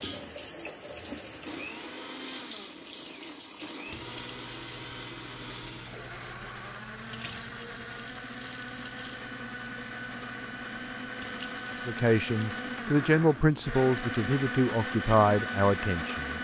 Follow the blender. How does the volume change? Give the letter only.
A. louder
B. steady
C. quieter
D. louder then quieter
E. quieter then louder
A.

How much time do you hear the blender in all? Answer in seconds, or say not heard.
16 s.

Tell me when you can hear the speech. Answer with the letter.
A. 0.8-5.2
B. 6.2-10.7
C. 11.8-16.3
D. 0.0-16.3
C.